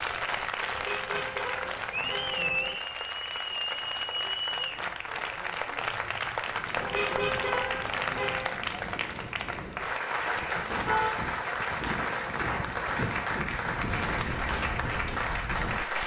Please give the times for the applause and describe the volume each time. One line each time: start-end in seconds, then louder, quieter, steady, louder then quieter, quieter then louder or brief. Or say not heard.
0.0-16.0 steady.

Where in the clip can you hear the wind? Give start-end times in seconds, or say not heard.
6.4-16.0.